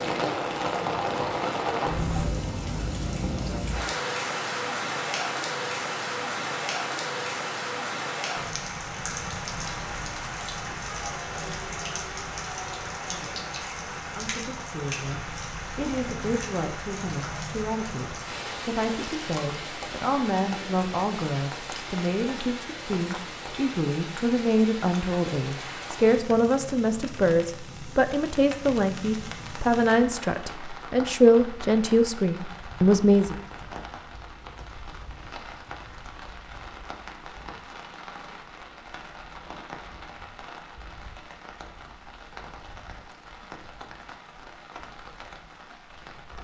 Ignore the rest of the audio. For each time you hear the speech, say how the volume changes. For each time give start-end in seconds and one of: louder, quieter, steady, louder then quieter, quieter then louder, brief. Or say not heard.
14.1-33.4 louder.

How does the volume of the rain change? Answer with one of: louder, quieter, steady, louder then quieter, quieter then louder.
quieter.